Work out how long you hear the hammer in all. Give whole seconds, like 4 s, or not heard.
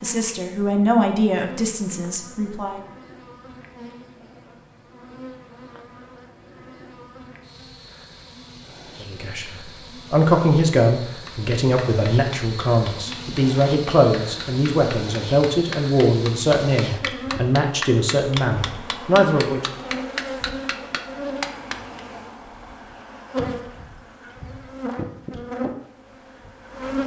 11 s.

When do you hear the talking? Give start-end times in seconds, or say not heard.
0.0-2.8, 9.0-19.8.